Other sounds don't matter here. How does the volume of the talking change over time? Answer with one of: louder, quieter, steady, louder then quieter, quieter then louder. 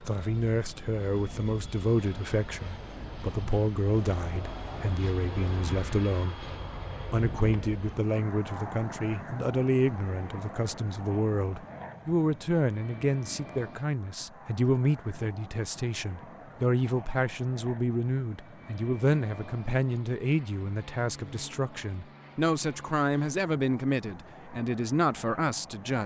steady.